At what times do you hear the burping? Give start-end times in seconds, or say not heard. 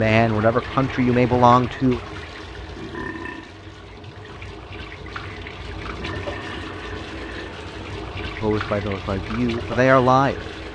2.8-3.5, 5.8-7.5.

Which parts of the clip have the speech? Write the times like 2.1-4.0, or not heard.
0.0-2.0, 8.4-10.6.